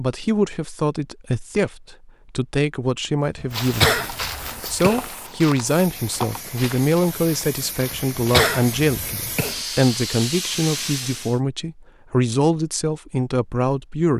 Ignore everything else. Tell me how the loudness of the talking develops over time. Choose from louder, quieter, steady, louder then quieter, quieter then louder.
steady.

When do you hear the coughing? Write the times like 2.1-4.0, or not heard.
3.4-5.0, 7.9-9.6.